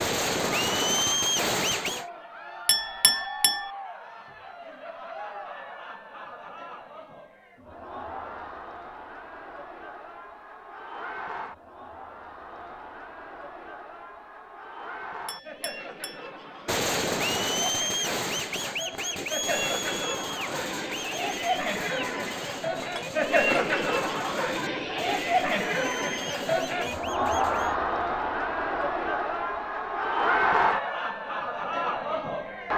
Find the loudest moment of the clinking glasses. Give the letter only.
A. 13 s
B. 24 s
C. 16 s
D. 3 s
D.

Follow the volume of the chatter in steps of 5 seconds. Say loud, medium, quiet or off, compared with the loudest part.
quiet, quiet, quiet, medium, loud, loud, loud.